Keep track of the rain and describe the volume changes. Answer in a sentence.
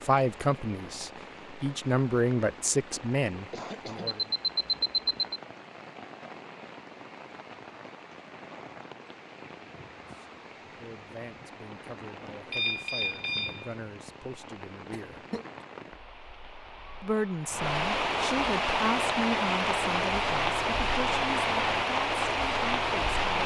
The loudness of the rain goes up.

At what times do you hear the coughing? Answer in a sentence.
The coughing can be heard from 3.4 to 4.2 s and from 14.9 to 15.4 s.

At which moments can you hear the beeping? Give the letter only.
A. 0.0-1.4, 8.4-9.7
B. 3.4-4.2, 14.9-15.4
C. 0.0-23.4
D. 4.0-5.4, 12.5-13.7
D.